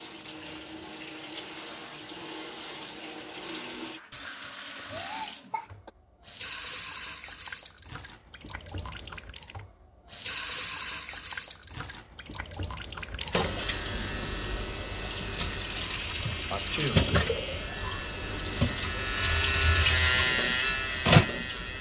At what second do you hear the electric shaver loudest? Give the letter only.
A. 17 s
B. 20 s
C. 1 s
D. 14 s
B.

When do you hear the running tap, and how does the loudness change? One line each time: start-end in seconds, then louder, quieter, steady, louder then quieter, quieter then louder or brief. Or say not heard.
0.0-21.7 louder.